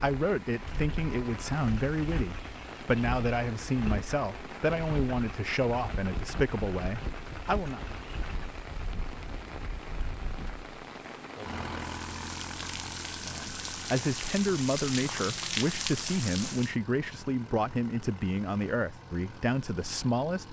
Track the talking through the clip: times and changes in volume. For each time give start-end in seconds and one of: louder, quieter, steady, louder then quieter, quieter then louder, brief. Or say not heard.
0.0-7.8 steady
13.2-20.4 steady.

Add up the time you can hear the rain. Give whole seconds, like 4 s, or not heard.
17 s.